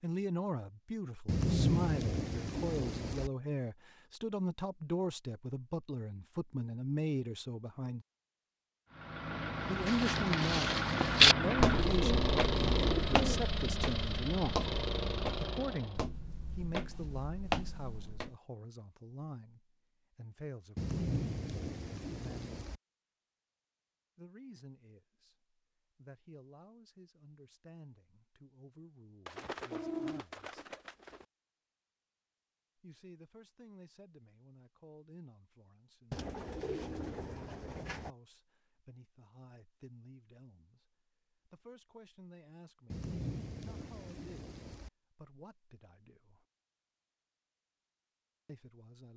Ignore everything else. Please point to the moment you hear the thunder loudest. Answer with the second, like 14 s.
2 s.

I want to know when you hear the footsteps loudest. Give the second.
11 s.